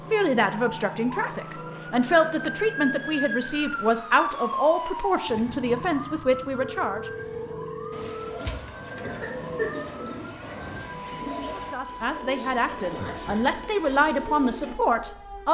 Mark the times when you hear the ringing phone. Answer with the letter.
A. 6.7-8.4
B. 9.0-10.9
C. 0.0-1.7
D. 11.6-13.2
A.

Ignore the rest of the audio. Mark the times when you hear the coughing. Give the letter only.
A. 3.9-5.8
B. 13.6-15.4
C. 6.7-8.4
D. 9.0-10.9
D.